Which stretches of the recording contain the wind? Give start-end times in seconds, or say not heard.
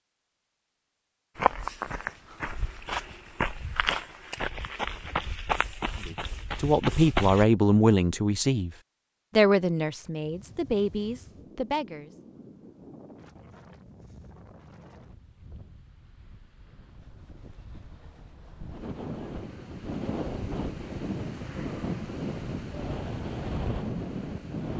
9.9-24.7.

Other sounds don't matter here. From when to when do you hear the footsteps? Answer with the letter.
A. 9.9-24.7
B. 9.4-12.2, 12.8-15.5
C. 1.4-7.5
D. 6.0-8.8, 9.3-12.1
C.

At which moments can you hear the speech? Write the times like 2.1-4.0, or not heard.
6.0-8.8, 9.3-12.1.